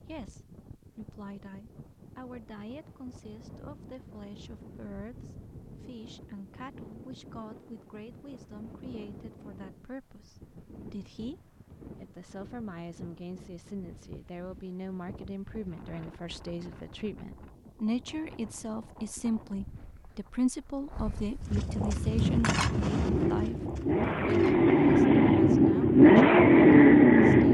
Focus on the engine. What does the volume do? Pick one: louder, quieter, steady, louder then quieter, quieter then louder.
louder.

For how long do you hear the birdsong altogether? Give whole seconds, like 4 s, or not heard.
not heard.